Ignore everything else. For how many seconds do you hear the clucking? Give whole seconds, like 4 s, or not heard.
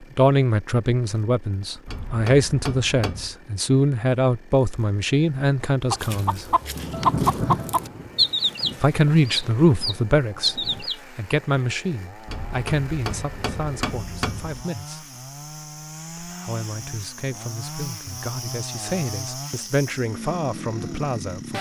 5 s.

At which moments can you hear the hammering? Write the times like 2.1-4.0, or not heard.
1.9-3.4, 12.2-14.7.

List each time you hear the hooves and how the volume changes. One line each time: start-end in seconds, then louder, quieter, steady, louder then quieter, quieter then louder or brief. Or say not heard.
not heard.